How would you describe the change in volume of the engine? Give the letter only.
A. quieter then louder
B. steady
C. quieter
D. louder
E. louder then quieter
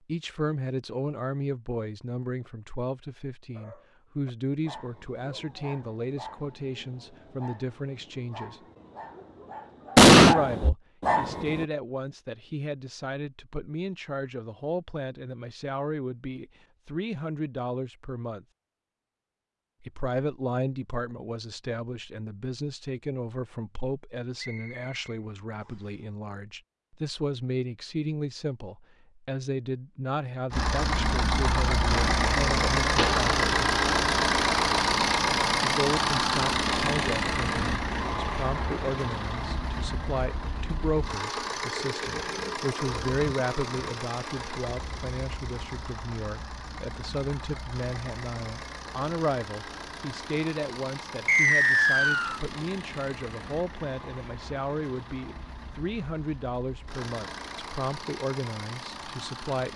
C.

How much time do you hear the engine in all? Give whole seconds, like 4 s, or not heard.
29 s.